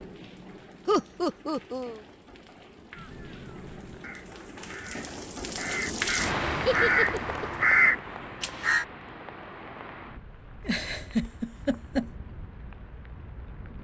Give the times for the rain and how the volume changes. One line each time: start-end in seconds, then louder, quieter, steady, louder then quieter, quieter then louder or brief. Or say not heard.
0.0-13.7 louder then quieter.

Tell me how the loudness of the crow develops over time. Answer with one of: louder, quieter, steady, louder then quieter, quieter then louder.
louder.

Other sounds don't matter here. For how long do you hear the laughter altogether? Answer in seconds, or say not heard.
3 s.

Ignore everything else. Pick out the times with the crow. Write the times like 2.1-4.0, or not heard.
2.9-8.8.